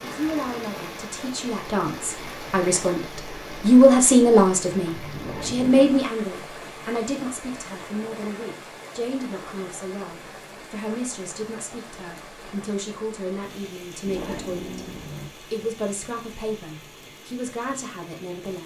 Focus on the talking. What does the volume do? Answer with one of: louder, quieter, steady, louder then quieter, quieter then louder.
louder then quieter.